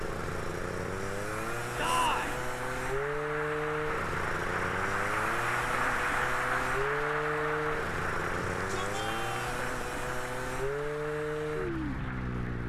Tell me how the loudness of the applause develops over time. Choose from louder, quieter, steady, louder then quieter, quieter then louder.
louder then quieter.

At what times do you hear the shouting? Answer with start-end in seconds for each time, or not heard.
1.8-2.4, 8.6-9.6.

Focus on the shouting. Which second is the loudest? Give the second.
2 s.